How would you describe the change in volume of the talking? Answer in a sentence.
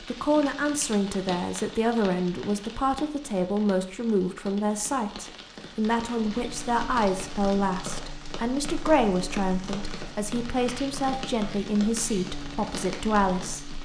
The loudness of the talking stays about the same.